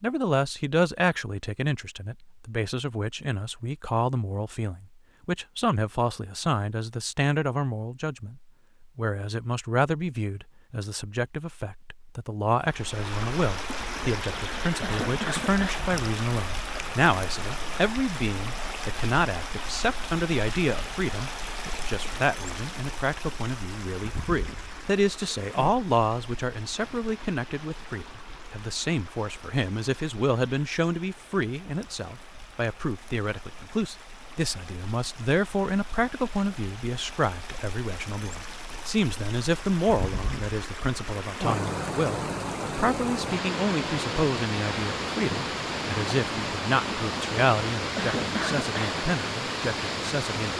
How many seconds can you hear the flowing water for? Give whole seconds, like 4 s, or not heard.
38 s.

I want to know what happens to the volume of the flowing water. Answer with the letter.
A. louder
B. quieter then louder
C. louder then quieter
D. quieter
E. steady
B.